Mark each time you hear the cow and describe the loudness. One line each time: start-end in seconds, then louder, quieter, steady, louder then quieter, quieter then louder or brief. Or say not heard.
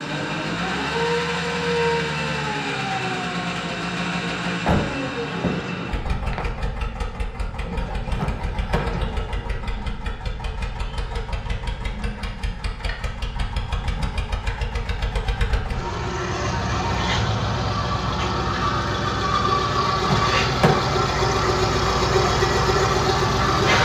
not heard.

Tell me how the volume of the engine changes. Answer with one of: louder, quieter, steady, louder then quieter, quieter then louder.
quieter then louder.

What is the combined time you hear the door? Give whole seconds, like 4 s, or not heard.
3 s.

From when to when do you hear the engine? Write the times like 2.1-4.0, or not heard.
0.0-23.7.